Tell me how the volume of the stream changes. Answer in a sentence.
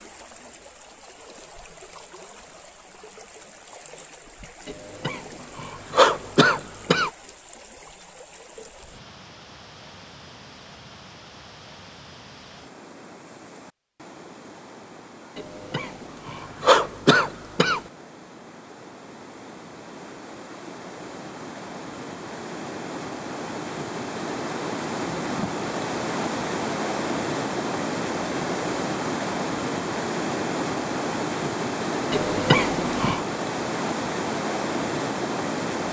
The volume of the stream goes up.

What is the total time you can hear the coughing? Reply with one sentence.
The coughing can be heard for 6 seconds in total.